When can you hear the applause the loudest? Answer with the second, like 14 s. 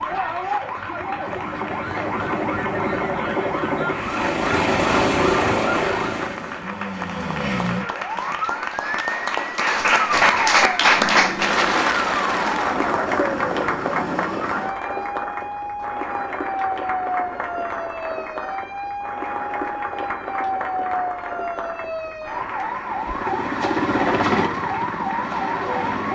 11 s.